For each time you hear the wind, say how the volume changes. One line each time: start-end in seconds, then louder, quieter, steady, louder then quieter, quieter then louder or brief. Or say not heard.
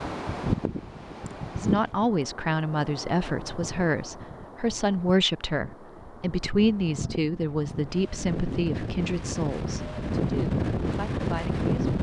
0.0-11.9 quieter then louder.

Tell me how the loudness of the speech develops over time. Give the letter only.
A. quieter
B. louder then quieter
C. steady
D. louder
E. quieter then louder
A.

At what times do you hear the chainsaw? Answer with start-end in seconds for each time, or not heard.
not heard.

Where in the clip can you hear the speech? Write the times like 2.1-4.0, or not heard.
1.6-11.7.